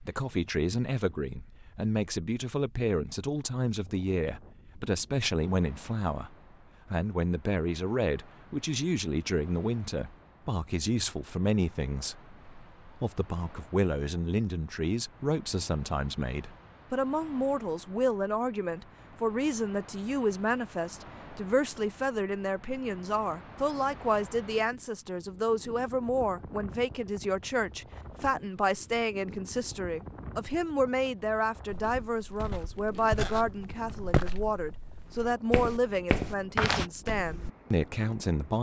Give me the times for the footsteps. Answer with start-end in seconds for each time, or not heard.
31.7-37.5.